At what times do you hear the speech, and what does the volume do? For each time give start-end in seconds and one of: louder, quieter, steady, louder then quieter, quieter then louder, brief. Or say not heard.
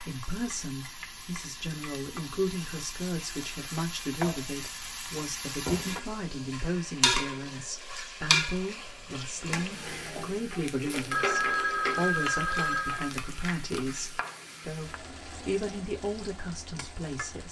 0.0-17.4 steady.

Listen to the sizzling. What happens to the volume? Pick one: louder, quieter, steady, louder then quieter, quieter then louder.
louder then quieter.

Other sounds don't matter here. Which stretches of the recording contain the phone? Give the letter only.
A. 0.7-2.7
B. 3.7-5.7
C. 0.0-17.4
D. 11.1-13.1
D.